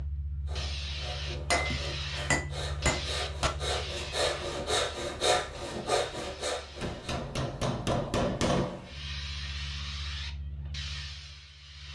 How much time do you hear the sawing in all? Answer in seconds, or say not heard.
7 s.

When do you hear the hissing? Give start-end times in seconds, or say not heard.
0.0-7.2, 8.8-11.9.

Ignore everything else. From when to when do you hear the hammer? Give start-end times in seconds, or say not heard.
1.5-3.5, 6.8-9.0.